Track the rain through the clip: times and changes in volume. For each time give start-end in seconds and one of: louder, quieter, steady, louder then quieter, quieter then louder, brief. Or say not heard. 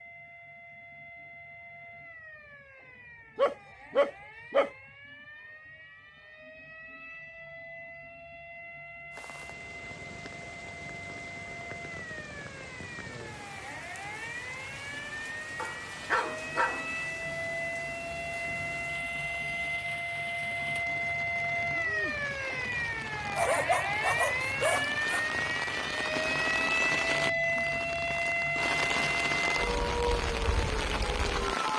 9.1-31.7 louder.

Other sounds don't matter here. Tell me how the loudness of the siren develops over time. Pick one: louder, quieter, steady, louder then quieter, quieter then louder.
louder.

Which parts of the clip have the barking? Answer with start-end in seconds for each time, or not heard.
3.4-4.7, 15.6-17.0, 23.4-25.2.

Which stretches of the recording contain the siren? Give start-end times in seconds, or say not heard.
0.0-31.7.